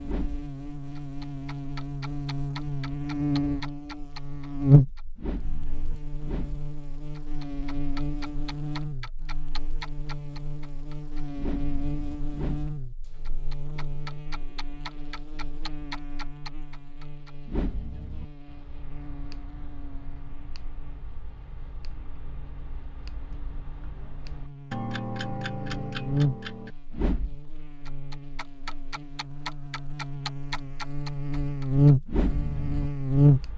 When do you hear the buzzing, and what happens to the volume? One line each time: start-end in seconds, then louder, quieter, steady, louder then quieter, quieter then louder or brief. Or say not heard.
0.0-33.5 quieter then louder.